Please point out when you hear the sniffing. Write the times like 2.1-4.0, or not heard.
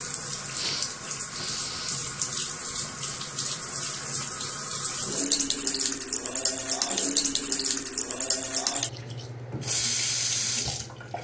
0.5-2.0.